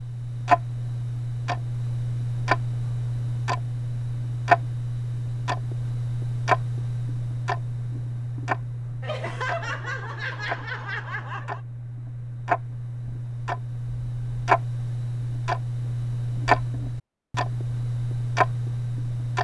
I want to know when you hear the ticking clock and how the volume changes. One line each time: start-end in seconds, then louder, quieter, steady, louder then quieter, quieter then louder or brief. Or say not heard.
0.0-19.3 quieter then louder.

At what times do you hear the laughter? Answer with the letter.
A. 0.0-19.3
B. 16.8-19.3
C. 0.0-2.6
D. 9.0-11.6
D.